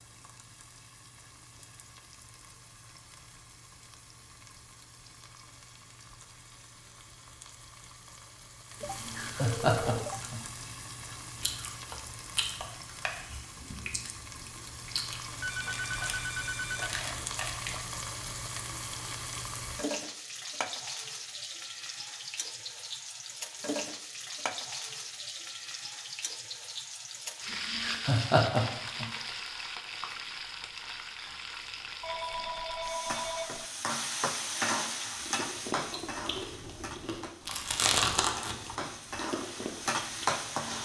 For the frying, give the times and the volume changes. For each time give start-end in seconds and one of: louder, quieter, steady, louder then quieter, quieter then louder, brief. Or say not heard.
0.0-40.8 louder.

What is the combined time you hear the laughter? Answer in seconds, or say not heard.
3 s.